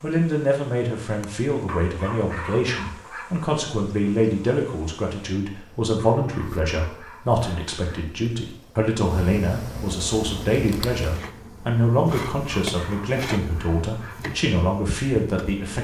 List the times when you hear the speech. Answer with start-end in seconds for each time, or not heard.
0.0-15.7.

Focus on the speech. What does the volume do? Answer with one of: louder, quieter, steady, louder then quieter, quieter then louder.
steady.